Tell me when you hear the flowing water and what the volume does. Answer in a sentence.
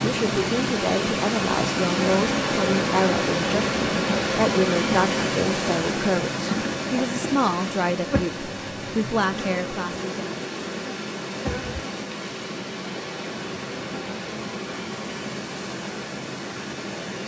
The flowing water can be heard from 0.0 to 17.2 s, getting quieter.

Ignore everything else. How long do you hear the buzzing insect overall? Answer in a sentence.
You can hear the buzzing insect for 15 seconds altogether.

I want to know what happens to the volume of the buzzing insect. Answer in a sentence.
The volume of the buzzing insect goes down.